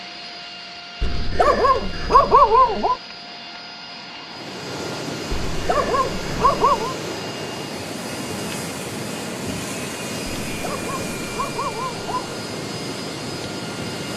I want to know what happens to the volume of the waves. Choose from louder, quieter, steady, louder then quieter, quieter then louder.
steady.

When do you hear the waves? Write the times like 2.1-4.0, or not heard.
4.2-14.1.